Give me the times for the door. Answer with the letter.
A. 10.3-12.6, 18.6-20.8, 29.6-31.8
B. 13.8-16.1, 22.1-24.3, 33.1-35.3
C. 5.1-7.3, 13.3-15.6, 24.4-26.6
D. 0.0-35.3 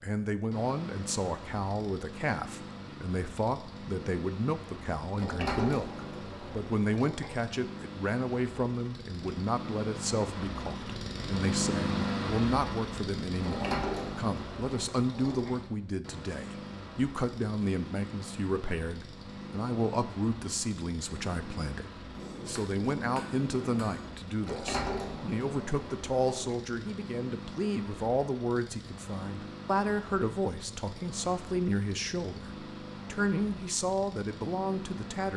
C.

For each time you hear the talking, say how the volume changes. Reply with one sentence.
The talking can be heard from 0.0 to 35.3 s, at a steady volume.